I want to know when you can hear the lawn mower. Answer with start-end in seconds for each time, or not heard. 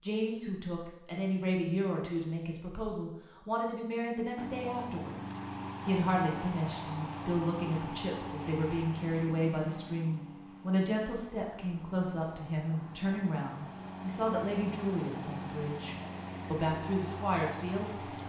4.3-18.2.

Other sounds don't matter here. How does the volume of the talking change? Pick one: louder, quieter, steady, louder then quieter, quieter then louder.
steady.